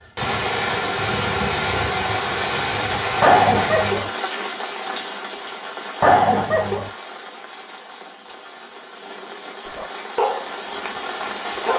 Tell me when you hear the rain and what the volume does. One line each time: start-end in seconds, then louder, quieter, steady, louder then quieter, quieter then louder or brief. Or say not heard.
0.1-11.7 quieter then louder.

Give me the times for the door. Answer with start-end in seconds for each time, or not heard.
not heard.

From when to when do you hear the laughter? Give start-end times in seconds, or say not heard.
3.2-4.1, 6.0-6.9.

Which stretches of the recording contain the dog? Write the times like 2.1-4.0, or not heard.
9.7-11.7.